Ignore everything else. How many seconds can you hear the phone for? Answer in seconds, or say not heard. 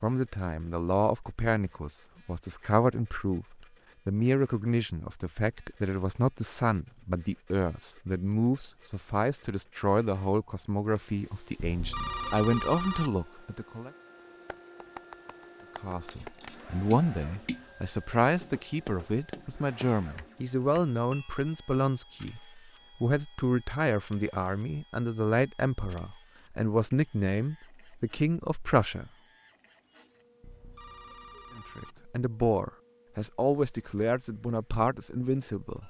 3 s.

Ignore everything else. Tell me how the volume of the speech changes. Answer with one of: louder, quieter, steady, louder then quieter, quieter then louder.
steady.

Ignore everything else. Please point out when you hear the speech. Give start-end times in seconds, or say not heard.
0.0-13.9, 15.8-29.1, 31.6-35.8.